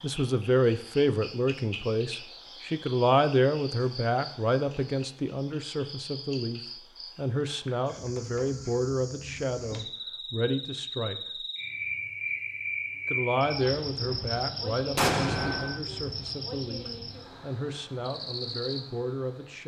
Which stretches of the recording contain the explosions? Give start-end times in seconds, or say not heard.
14.9-15.8.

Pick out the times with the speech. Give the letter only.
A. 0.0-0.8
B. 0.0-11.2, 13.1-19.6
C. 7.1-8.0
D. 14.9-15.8
B.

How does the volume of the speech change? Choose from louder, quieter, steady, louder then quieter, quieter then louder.
quieter.